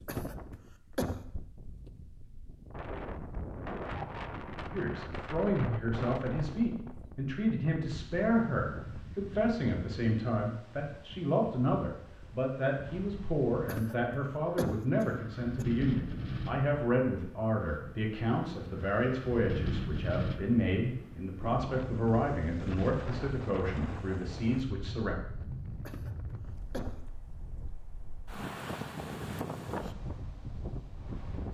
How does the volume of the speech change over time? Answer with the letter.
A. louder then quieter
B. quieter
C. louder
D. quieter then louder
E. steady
E.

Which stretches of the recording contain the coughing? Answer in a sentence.
You can hear the coughing from 0.1 to 1.2 s, from 13.7 to 15.7 s and from 25.9 to 27.1 s.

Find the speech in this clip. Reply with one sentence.
The speech can be heard from 4.7 to 25.1 s.